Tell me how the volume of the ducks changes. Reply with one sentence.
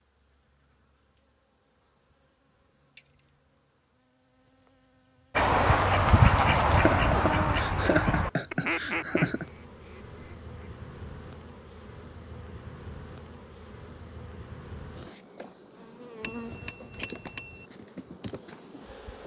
The loudness of the ducks goes down.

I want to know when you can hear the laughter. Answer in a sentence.
You can hear the laughter from 6.7 to 9.4 s.